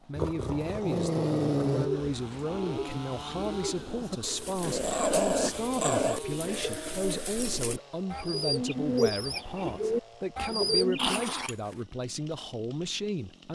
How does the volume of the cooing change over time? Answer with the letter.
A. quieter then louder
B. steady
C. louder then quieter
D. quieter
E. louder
E.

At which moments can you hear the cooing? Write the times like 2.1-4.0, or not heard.
1.8-11.2.